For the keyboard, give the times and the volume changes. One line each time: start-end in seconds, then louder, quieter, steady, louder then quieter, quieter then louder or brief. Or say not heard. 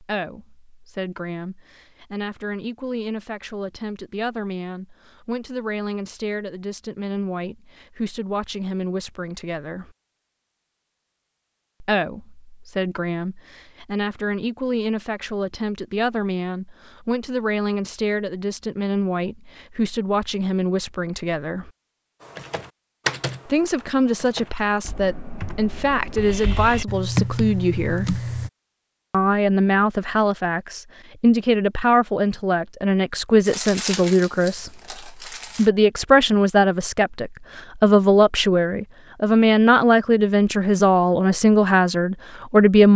22.2-28.5 quieter then louder.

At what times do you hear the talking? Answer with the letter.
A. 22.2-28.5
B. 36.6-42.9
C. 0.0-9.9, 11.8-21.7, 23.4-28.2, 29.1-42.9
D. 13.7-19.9
C.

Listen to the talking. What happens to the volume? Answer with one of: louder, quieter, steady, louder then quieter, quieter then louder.
louder.